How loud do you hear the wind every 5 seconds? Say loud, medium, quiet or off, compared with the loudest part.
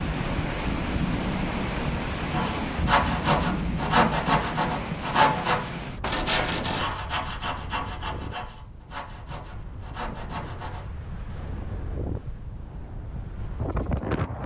loud, medium, medium.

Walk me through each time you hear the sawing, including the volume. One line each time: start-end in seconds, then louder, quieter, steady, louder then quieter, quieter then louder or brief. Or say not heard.
2.3-10.9 quieter.